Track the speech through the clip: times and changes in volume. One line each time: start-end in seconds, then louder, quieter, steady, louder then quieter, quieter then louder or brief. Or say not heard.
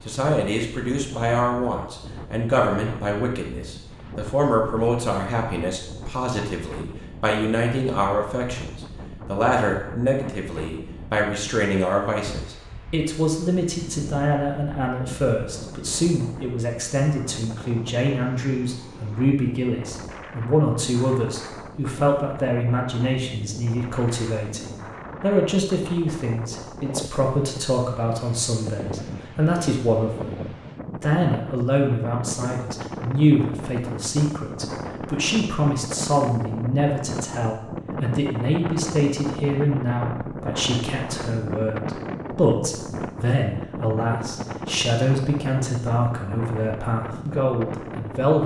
0.1-48.4 steady.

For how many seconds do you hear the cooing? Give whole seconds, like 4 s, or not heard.
not heard.